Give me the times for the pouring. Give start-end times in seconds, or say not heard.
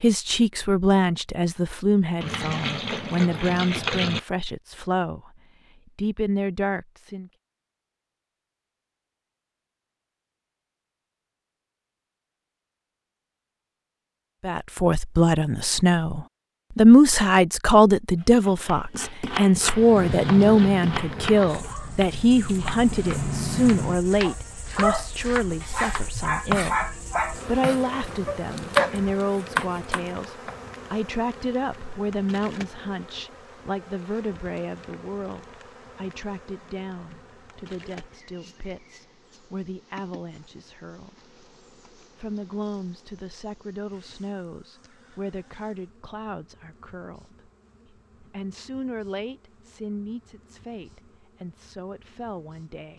2.2-4.2.